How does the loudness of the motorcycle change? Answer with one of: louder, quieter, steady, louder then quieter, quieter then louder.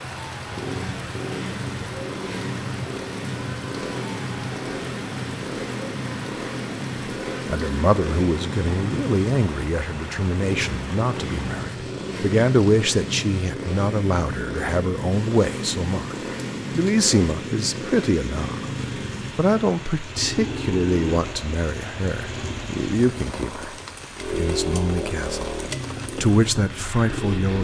steady.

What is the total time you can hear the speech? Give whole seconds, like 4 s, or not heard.
19 s.